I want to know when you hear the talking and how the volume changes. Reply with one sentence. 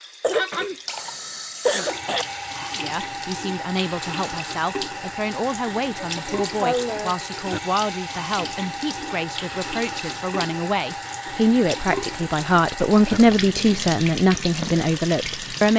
You can hear the talking from 2.7 to 15.7 s, getting louder.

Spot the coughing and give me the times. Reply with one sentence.
You can hear the coughing from 0.2 to 2.2 s, from 6.0 to 7.2 s and from 13.2 to 13.9 s.